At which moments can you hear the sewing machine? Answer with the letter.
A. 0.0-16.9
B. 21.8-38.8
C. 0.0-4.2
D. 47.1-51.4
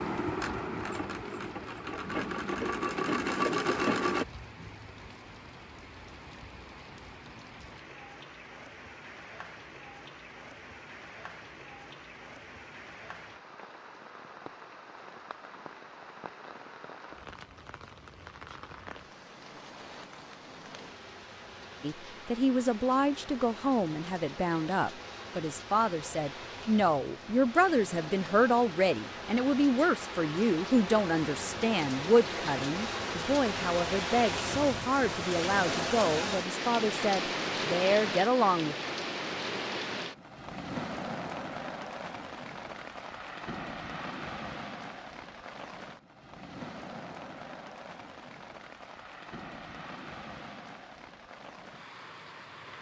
C.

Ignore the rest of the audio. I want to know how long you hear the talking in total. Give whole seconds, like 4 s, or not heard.
17 s.